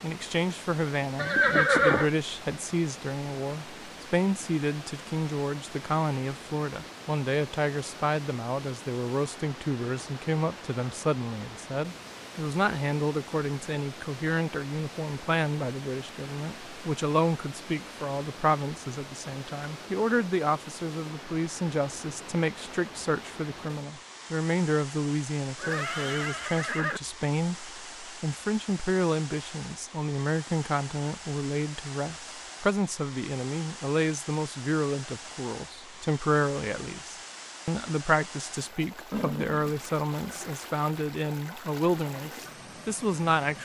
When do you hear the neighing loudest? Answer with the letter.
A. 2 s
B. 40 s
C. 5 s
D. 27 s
A.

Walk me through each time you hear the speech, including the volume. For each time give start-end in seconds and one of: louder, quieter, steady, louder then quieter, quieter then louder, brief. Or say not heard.
0.0-43.6 steady.